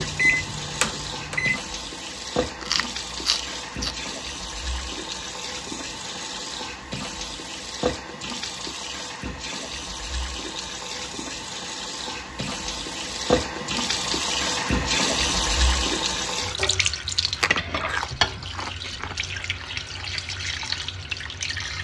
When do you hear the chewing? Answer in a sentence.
You can hear the chewing from 2.6 to 4.0 s and from 17.2 to 19.1 s.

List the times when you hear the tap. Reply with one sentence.
You can hear the tap from 0.0 to 21.7 s.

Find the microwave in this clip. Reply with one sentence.
You can hear the microwave from 0.0 to 1.6 s.